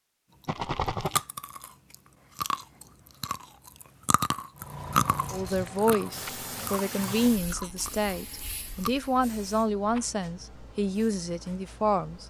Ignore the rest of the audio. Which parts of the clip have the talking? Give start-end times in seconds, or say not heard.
5.3-12.2.